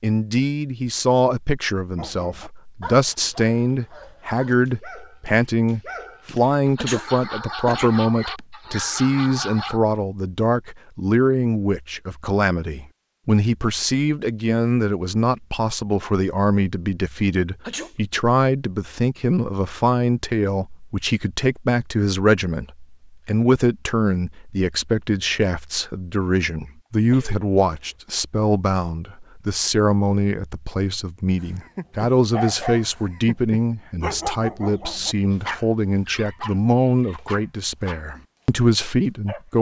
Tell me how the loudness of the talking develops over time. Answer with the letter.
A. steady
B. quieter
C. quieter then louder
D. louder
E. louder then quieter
A.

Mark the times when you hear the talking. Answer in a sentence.
You can hear the talking from 0.0 to 39.5 s.